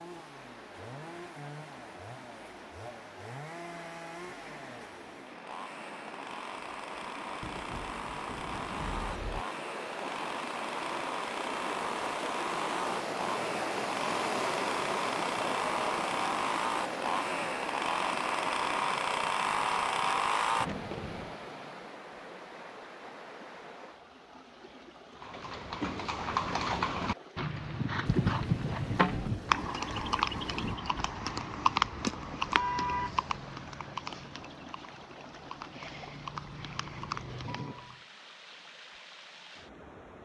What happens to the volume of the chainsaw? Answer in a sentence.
The loudness of the chainsaw goes up.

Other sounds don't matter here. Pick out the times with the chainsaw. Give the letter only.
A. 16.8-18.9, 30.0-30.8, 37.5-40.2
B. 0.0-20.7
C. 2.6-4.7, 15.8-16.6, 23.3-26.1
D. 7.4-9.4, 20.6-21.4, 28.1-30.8
B.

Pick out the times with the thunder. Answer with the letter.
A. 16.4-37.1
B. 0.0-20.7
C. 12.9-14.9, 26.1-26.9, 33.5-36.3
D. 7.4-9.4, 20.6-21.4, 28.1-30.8
D.